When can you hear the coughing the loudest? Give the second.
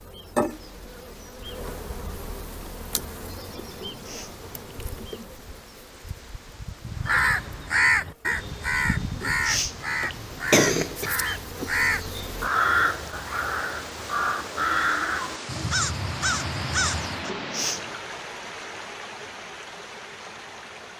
11 s.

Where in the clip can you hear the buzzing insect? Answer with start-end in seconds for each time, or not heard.
0.0-12.5.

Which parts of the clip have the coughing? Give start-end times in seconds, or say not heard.
3.8-4.9, 9.2-11.3, 17.2-17.9.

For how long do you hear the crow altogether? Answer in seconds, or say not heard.
10 s.